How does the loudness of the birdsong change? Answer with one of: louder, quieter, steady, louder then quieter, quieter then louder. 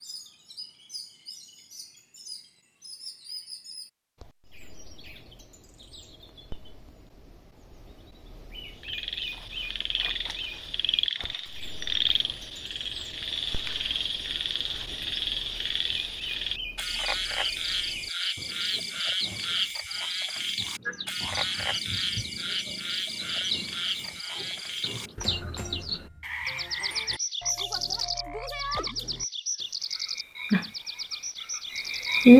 louder.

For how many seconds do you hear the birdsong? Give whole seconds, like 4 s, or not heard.
32 s.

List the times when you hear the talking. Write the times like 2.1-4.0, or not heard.
not heard.